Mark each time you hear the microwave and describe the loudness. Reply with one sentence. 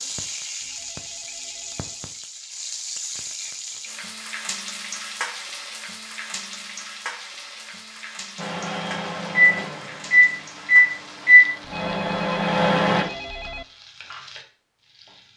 The microwave can be heard from 8.3 to 13.1 s, getting louder then quieter.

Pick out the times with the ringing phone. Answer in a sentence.
You can hear the ringing phone from 0.6 to 2.1 s and from 11.6 to 13.7 s.